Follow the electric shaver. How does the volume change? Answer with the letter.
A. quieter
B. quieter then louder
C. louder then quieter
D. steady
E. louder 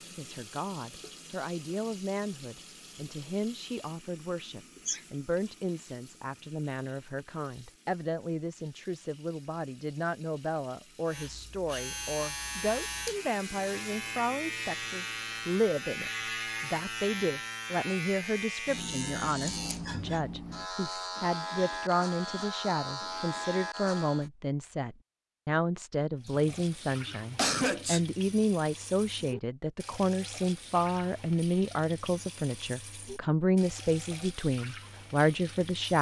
D.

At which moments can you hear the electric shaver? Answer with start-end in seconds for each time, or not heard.
11.1-24.3.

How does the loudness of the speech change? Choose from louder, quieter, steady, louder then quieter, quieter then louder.
louder.